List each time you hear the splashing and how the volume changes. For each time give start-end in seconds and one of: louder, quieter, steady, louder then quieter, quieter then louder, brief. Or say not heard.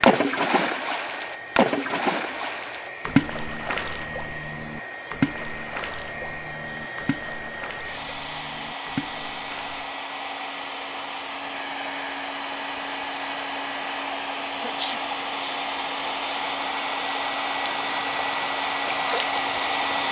0.0-9.9 quieter
17.6-18.2 brief
18.9-19.9 brief.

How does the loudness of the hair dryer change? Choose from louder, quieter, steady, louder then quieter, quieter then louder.
louder.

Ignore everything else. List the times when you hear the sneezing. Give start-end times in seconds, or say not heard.
14.6-15.6.